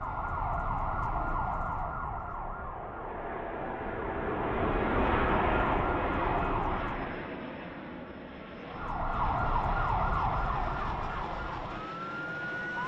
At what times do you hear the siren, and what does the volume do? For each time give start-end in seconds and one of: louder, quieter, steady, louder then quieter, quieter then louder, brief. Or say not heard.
0.0-7.2 quieter then louder
8.7-12.8 quieter.